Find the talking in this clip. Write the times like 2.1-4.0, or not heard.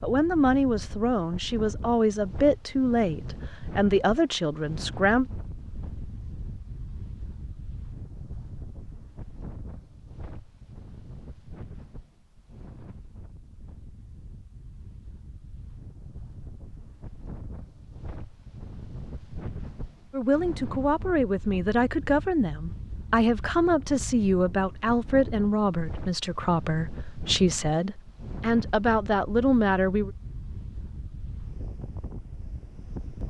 0.0-5.2, 20.1-30.1.